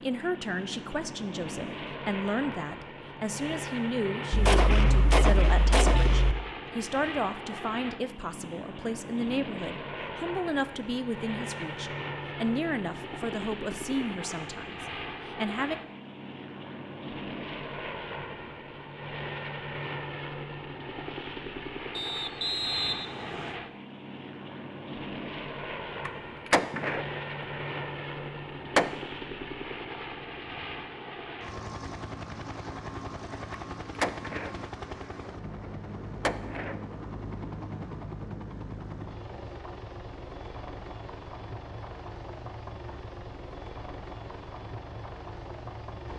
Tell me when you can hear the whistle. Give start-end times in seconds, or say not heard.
21.9-23.6.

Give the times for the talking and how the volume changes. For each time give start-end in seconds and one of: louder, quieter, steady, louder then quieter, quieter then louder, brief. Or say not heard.
0.0-15.8 steady.